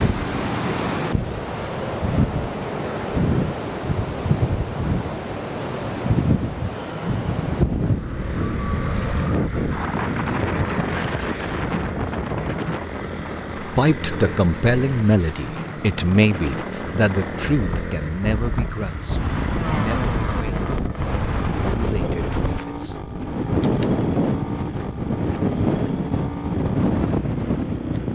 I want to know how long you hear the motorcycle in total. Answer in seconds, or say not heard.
20 s.